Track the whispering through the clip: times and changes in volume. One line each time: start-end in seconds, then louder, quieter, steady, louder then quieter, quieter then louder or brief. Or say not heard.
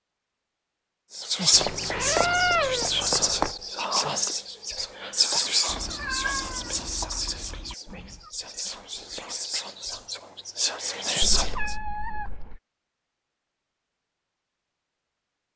1.1-11.8 quieter then louder.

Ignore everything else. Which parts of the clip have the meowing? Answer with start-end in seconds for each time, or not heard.
1.5-3.5, 5.7-8.3, 11.2-12.6.